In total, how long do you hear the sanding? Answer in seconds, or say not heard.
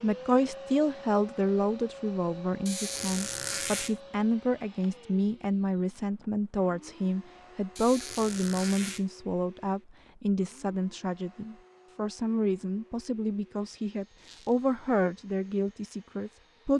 not heard.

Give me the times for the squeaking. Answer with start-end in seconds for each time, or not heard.
2.6-4.0, 7.8-9.1, 14.2-14.7.